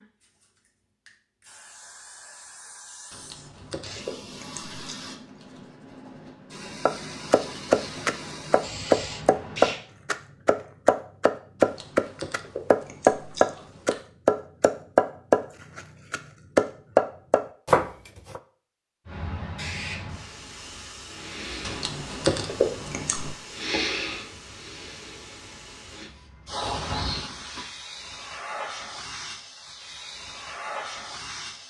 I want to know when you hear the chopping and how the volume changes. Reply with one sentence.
You can hear the chopping from 6.8 to 18.4 s, at a steady volume.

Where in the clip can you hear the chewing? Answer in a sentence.
The chewing can be heard from 3.1 to 5.0 s, from 11.6 to 14.0 s and from 21.6 to 23.4 s.